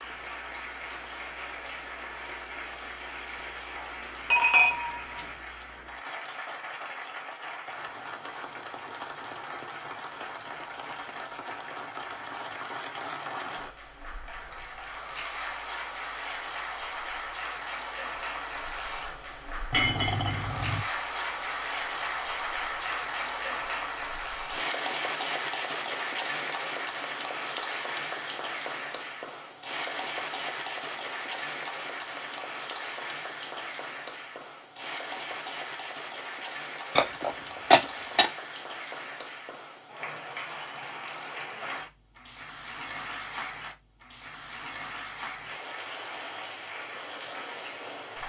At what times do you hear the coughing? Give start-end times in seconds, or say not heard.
not heard.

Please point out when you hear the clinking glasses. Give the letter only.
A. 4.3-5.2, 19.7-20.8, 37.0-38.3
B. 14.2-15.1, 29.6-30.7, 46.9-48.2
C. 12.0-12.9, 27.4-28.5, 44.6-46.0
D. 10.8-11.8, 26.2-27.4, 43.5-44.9
A.